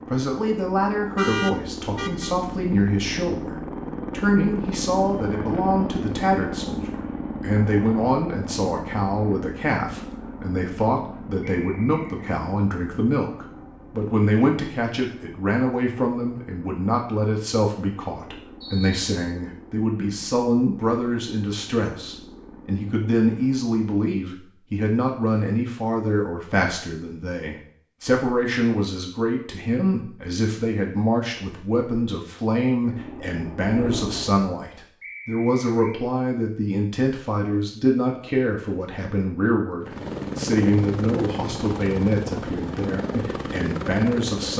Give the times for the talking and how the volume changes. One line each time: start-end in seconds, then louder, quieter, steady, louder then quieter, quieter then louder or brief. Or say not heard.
0.1-44.5 steady.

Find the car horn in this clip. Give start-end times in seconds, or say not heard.
1.1-2.4.